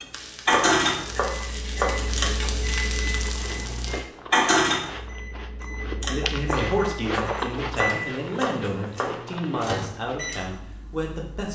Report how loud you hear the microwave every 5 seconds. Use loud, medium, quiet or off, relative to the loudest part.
loud, medium, quiet.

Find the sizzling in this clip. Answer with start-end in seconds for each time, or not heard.
0.0-4.1.